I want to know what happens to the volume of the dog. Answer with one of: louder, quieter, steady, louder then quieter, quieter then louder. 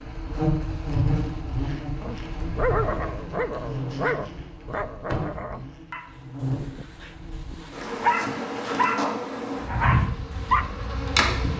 quieter then louder.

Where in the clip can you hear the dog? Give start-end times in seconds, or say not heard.
2.0-10.7.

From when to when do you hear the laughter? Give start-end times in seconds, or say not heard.
not heard.